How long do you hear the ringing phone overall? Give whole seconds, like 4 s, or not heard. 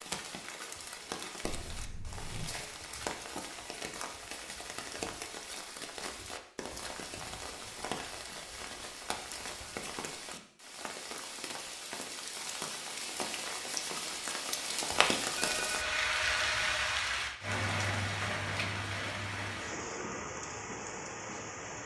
3 s.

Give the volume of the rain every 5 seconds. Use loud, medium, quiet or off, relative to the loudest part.
medium, medium, medium, loud, medium.